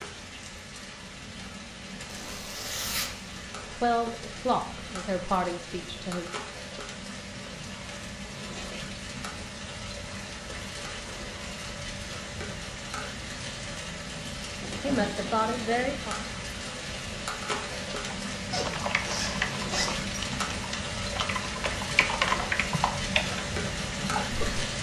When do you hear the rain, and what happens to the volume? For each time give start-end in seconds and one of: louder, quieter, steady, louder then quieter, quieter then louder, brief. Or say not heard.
0.0-24.7 louder.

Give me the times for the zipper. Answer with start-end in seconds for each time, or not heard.
2.0-3.4, 18.5-20.1.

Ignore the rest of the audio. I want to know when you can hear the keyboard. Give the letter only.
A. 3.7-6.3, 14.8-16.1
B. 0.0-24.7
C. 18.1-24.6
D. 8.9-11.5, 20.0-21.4
C.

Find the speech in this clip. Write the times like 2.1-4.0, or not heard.
3.7-6.3, 14.8-16.1.